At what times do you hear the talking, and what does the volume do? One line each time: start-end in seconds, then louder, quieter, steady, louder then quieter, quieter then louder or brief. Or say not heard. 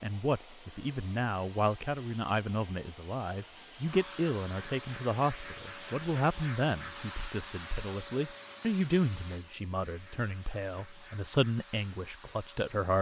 0.0-12.9 steady.